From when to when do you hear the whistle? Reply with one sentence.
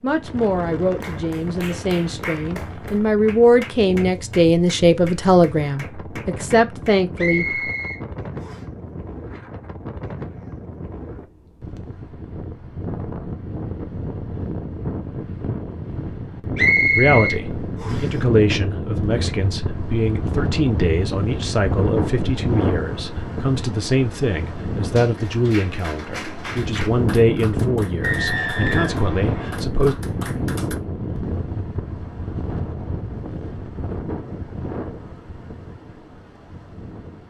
You can hear the whistle from 7.2 to 8.6 s, from 16.6 to 18.1 s and from 28.0 to 29.6 s.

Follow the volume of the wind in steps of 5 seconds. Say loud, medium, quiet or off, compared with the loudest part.
medium, medium, medium, loud, loud, loud, loud, quiet.